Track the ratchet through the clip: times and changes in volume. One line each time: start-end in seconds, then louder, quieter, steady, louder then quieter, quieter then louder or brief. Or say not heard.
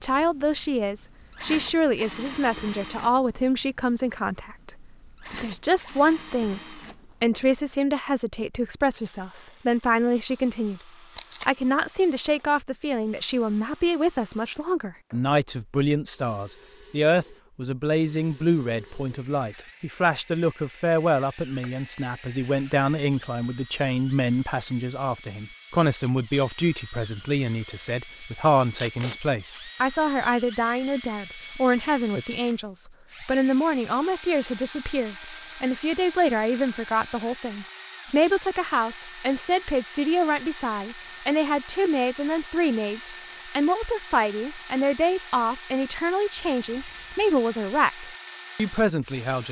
not heard.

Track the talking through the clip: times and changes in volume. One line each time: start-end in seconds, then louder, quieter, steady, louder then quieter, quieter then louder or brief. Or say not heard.
0.0-10.8 steady
11.4-49.4 steady.